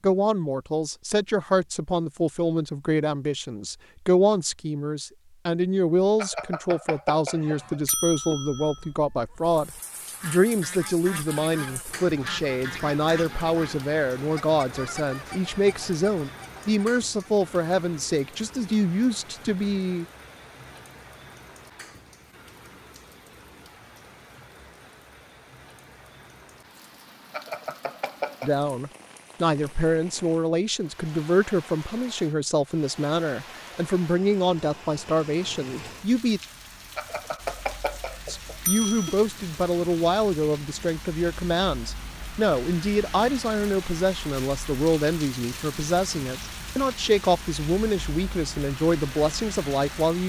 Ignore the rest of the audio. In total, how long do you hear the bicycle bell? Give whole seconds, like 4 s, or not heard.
6 s.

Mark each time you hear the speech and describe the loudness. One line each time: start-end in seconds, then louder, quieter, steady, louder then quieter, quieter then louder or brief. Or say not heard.
0.0-20.1 steady
28.4-36.4 steady
38.2-50.2 steady.